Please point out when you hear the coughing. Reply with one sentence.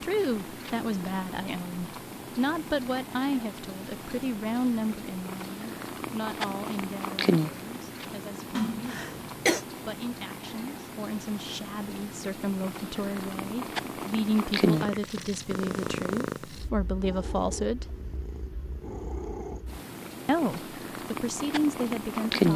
The coughing can be heard from 8.6 to 9.7 s.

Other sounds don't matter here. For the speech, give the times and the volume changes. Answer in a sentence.
You can hear the speech from 0.0 to 17.9 s, getting quieter then louder; and briefly from 20.2 to 22.5 s.